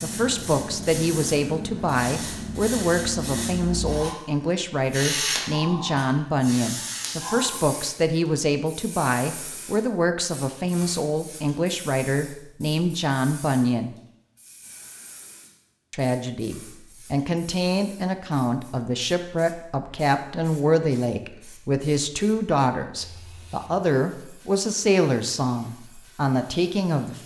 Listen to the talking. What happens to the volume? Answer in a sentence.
The loudness of the talking stays about the same.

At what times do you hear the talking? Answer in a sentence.
You can hear the talking from 0.0 to 13.9 s and from 15.9 to 27.2 s.